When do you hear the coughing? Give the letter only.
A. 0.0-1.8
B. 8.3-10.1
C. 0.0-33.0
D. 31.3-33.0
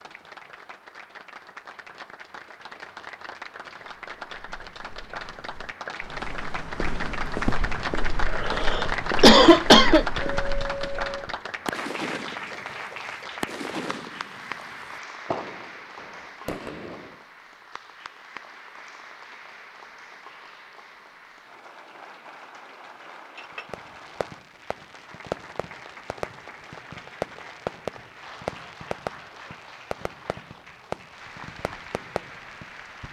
B.